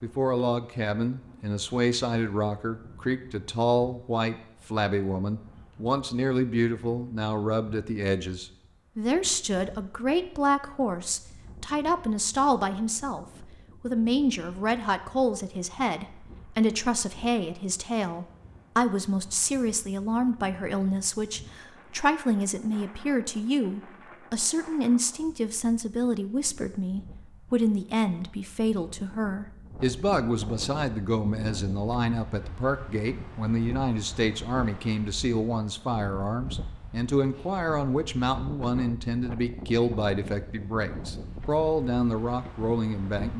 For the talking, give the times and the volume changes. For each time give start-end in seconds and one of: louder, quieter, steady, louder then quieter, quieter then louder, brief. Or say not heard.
0.0-43.3 steady.